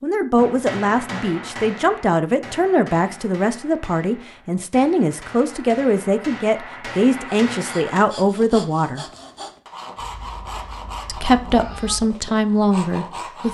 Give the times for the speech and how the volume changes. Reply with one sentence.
You can hear the speech from 0.0 to 9.1 s, at a steady volume; and briefly from 11.1 to 13.4 s.